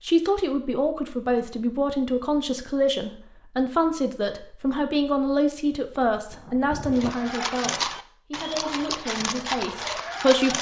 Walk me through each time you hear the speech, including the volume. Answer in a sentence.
The speech can be heard from 0.0 to 10.5 s, getting quieter.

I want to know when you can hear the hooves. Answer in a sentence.
You can hear the hooves from 6.9 to 10.5 s.